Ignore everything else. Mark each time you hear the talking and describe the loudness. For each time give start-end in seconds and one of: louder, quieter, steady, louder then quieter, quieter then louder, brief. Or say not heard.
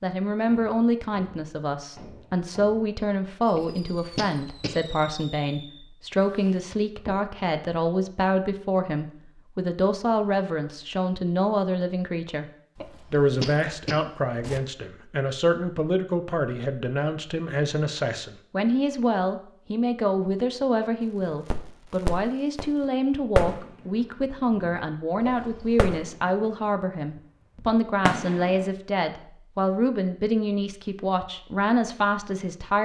0.0-12.4 steady
13.1-32.8 steady.